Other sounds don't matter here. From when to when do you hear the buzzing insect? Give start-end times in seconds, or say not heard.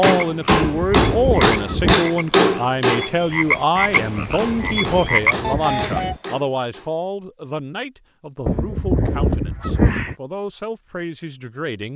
not heard.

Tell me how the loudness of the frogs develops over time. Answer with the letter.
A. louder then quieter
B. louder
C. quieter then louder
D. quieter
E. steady
B.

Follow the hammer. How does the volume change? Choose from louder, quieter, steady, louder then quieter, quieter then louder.
quieter.